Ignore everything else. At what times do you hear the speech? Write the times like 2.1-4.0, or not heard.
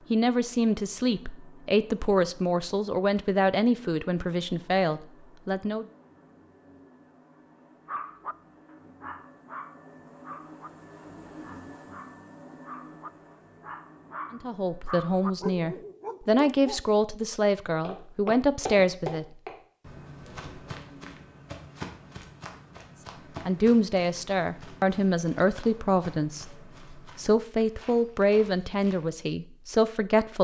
0.1-5.8, 14.3-19.2, 23.4-30.3.